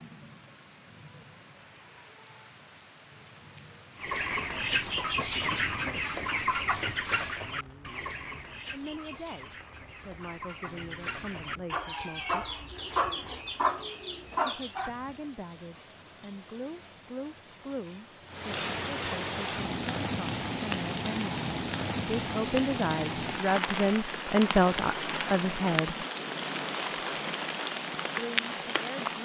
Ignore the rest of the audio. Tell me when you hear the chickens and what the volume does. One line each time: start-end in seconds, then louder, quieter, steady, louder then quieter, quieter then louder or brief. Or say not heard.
4.0-14.9 quieter then louder.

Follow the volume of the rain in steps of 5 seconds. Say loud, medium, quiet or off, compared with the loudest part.
quiet, quiet, quiet, medium, loud, loud.